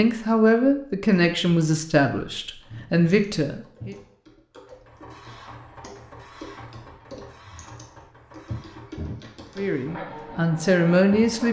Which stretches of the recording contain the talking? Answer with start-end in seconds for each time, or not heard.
0.0-4.0, 9.6-11.4.